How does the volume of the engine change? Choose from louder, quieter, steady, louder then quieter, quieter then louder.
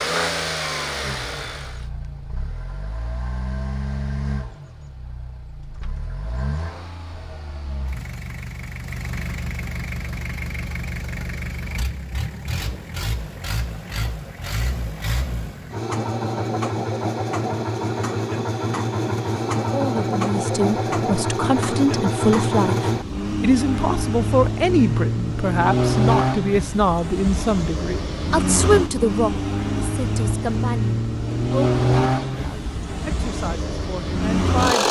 louder.